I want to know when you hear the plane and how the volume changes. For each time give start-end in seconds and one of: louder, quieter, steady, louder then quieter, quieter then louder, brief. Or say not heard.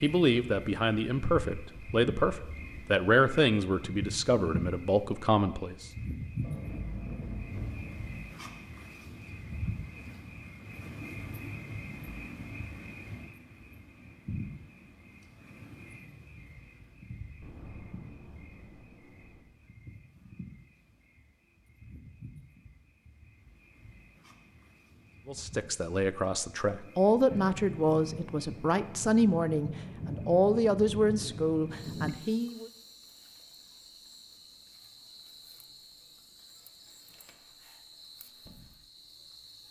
not heard.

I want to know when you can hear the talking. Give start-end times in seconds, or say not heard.
0.0-5.9, 25.2-32.7.